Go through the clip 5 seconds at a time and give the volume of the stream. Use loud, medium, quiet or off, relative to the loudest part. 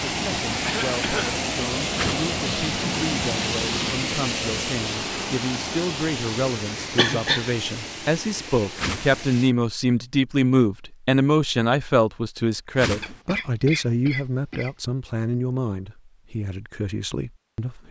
loud, medium, off, off.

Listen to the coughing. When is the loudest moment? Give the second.
7 s.